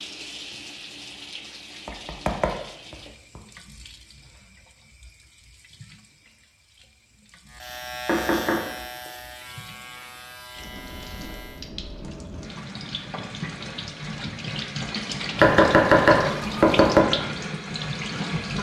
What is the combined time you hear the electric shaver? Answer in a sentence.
You can hear the electric shaver for 4 seconds altogether.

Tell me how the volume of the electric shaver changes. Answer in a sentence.
The volume of the electric shaver goes down.